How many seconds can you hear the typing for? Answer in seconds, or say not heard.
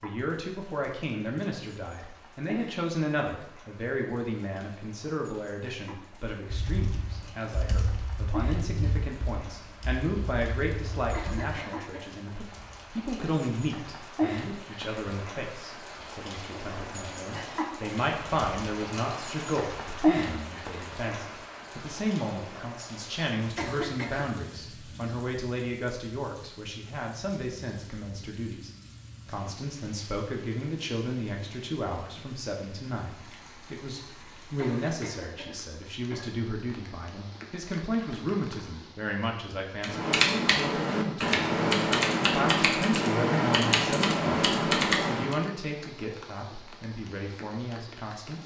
11 s.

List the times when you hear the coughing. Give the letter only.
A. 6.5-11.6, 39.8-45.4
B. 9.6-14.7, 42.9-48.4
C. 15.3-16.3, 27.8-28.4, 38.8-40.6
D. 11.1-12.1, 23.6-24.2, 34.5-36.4
D.